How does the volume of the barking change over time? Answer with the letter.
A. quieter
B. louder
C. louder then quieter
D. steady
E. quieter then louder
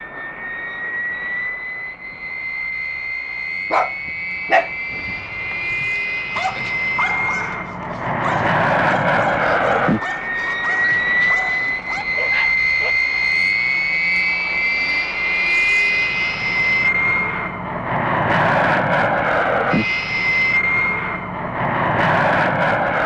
A.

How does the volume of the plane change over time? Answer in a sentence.
The volume of the plane goes up.